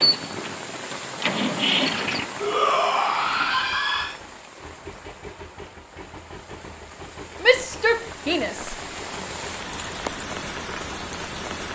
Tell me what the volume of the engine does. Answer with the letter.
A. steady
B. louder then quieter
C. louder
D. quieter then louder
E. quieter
E.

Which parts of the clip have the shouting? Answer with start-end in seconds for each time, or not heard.
2.4-4.2, 7.4-8.8.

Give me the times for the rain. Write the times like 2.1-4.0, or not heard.
0.0-11.7.